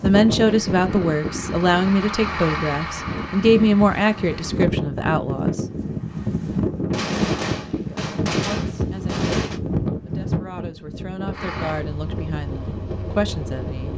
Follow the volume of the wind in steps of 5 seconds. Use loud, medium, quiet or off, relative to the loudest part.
loud, loud, medium.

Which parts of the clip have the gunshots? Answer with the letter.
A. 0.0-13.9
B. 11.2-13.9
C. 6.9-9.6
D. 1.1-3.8
C.